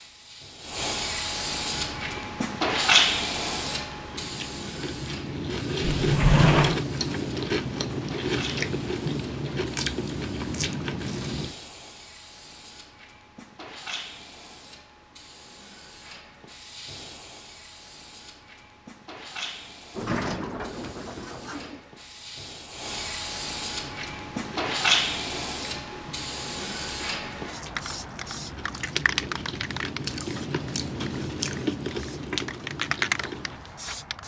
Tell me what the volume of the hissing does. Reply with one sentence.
The loudness of the hissing goes down, then up.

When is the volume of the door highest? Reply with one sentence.
The volume of the door peaks at 6 seconds.